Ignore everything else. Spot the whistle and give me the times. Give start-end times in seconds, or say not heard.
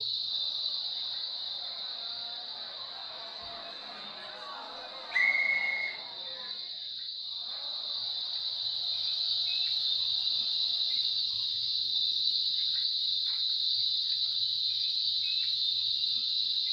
5.1-6.0.